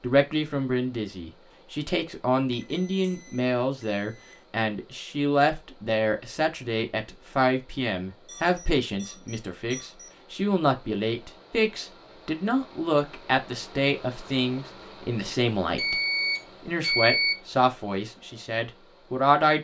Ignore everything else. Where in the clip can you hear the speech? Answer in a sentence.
The speech can be heard from 0.0 to 15.9 s and from 16.6 to 19.5 s.